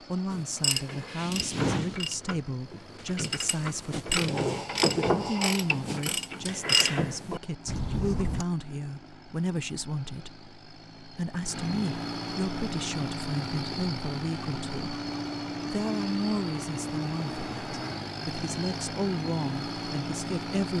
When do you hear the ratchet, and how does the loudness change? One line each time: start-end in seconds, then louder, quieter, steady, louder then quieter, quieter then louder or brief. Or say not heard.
0.3-8.4 quieter then louder.